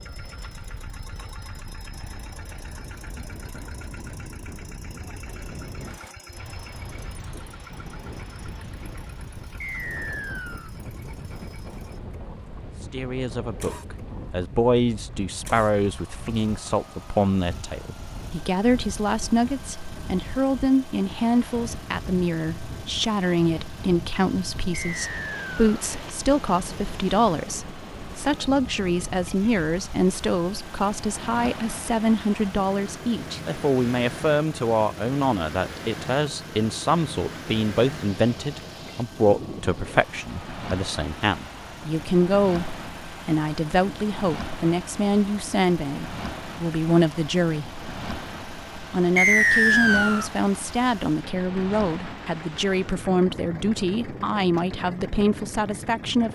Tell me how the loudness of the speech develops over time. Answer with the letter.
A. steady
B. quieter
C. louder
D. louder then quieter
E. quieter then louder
A.